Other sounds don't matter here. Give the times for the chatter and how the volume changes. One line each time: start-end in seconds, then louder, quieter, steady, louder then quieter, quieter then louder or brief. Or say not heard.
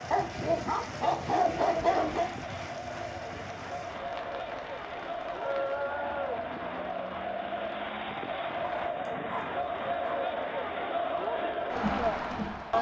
0.0-12.7 louder.